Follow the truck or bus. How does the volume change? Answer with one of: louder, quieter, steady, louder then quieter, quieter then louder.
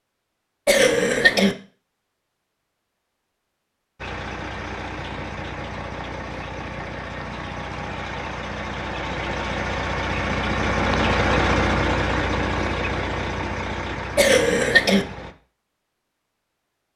louder then quieter.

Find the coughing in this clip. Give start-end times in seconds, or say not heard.
0.7-1.6, 14.2-15.1.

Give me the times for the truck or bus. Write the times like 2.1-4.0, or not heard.
4.0-15.3.